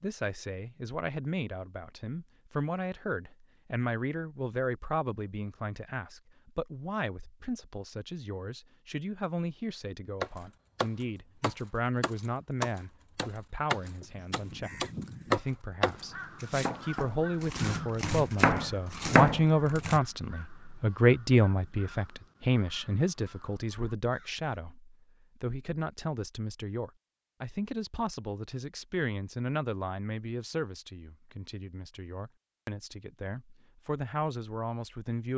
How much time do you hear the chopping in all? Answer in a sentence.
The chopping can be heard for 10 seconds in total.